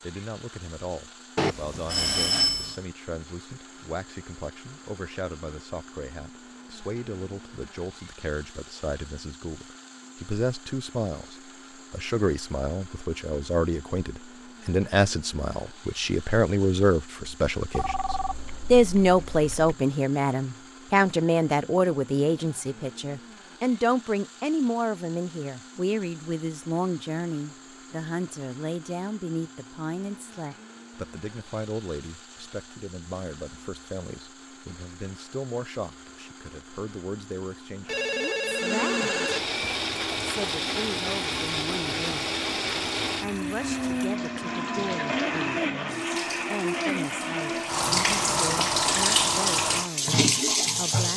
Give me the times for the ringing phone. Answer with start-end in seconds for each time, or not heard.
1.4-2.8, 17.7-19.8, 37.9-39.4.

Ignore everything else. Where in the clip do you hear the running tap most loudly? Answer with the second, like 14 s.
49 s.